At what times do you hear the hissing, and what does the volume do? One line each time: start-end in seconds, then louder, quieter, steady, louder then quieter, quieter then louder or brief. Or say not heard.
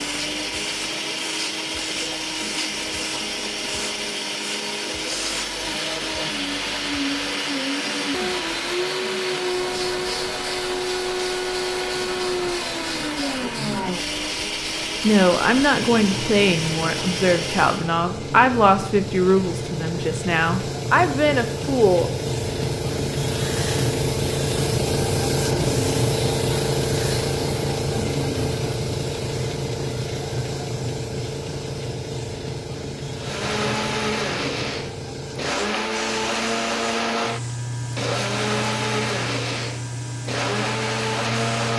0.0-41.7 louder then quieter.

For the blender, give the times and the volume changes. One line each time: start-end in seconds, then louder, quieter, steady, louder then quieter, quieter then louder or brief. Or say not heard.
0.0-17.9 steady
33.1-41.7 steady.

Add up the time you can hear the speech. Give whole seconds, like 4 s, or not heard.
7 s.